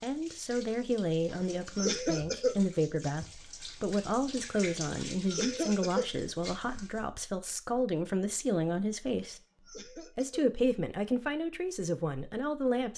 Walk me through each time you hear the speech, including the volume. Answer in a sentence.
The speech can be heard from 0.0 to 12.9 s, at a steady volume.